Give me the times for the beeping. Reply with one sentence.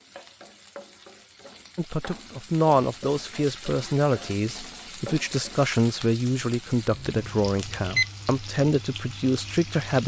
The beeping can be heard from 6.8 to 8.1 s.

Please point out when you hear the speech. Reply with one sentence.
The speech can be heard from 1.8 to 10.0 s.